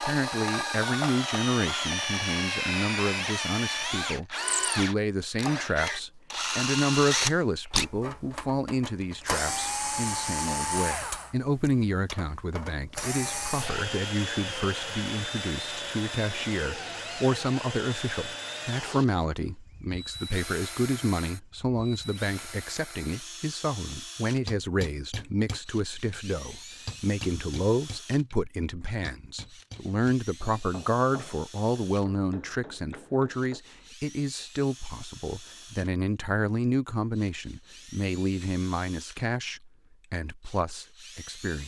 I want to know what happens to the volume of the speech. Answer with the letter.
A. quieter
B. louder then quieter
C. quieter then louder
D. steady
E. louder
D.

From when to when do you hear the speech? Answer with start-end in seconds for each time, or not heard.
0.0-41.6.